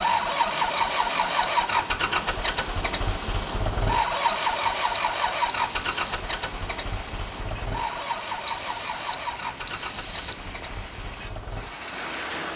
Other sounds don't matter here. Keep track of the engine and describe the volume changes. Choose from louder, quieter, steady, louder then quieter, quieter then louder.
quieter.